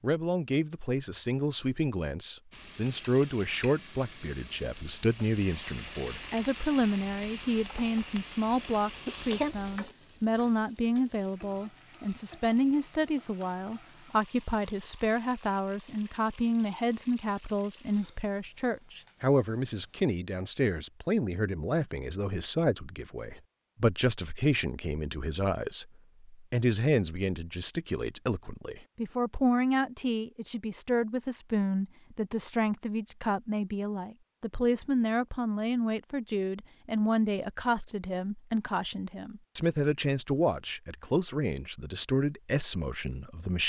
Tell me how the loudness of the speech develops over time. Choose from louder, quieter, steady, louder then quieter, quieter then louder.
steady.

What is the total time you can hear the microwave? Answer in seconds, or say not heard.
not heard.